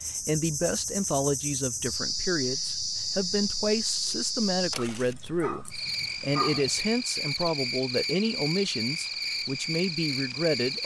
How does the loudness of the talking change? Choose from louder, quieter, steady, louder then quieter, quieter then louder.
steady.